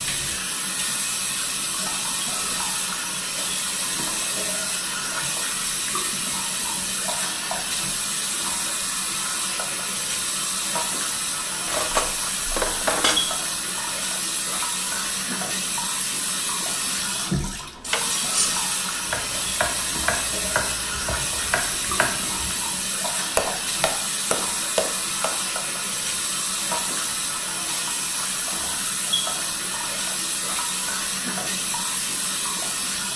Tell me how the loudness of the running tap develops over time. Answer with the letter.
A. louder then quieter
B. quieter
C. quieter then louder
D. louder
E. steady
E.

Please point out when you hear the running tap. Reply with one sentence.
You can hear the running tap from 0.0 to 33.1 s.